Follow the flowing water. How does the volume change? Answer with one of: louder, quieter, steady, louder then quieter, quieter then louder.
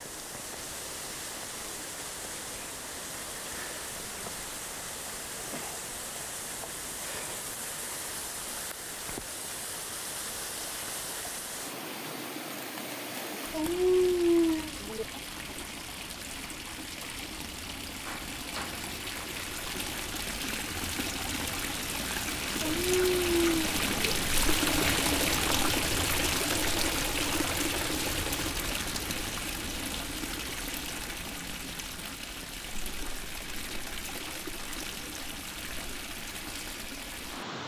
louder then quieter.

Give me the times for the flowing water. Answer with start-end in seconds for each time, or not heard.
0.0-37.6.